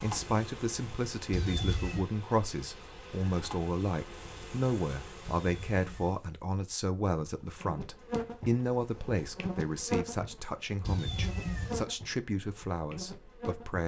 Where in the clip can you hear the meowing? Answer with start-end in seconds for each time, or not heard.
1.3-2.0, 5.3-6.2, 10.8-11.8.